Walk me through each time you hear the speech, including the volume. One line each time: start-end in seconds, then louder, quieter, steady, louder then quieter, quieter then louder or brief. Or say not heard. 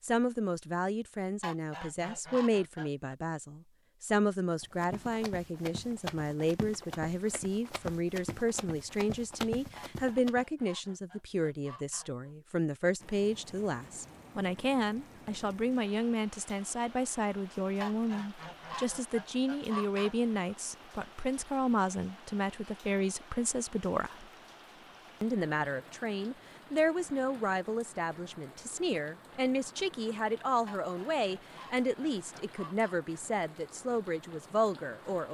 0.0-24.2 steady
25.2-35.2 steady.